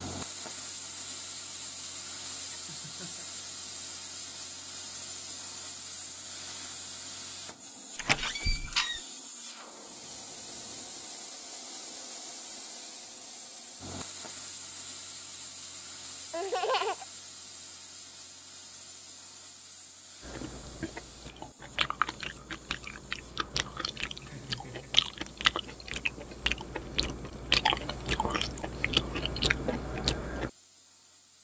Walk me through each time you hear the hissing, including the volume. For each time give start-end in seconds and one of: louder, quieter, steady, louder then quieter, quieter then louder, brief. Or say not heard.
0.0-31.3 quieter.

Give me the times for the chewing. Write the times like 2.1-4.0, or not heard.
20.2-30.5.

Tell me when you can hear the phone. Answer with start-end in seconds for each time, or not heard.
not heard.